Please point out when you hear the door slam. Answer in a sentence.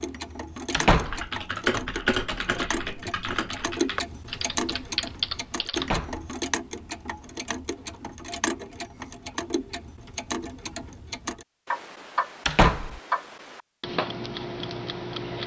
The door slam can be heard from 0.7 to 1.2 s, from 5.8 to 6.3 s and from 12.4 to 13.0 s.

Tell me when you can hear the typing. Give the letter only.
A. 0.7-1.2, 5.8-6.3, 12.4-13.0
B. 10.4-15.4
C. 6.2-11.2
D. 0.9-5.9
D.